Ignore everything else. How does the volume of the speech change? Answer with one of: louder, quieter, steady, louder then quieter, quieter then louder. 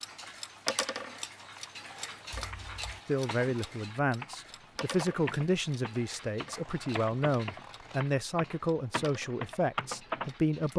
steady.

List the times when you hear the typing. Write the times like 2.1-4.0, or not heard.
0.0-10.7.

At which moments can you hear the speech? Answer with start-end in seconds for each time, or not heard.
3.0-10.7.